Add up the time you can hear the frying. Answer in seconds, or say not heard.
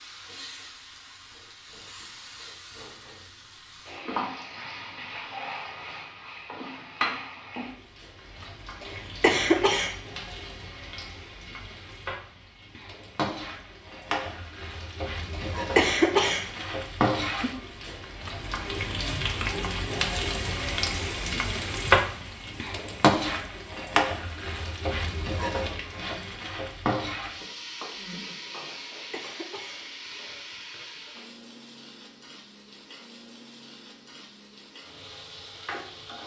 36 s.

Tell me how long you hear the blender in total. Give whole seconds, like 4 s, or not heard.
not heard.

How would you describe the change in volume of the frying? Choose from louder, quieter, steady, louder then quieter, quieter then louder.
louder then quieter.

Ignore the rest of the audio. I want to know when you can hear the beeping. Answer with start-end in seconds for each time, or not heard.
not heard.